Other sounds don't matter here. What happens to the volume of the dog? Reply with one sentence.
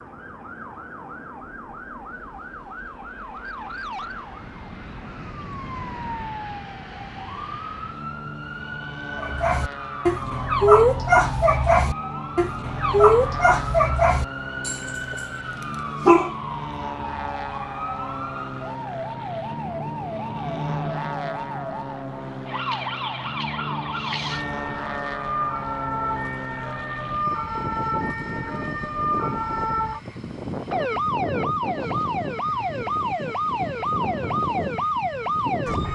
The loudness of the dog goes down.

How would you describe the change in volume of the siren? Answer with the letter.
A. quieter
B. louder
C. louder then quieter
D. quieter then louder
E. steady
B.